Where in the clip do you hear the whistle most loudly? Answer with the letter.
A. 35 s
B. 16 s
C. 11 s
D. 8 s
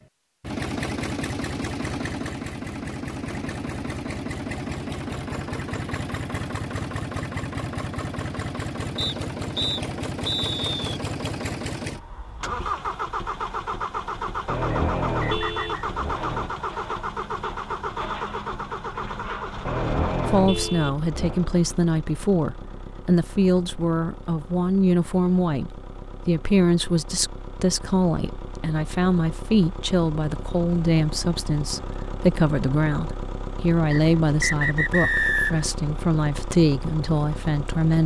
A.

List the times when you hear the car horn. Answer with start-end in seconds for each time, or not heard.
14.4-16.5, 19.6-21.4.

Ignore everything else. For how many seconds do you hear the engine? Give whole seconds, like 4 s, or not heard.
38 s.